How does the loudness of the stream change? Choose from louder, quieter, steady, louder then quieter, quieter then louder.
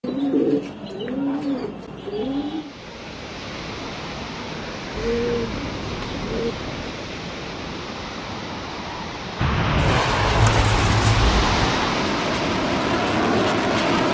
louder.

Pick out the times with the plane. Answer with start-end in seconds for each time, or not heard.
9.3-14.0.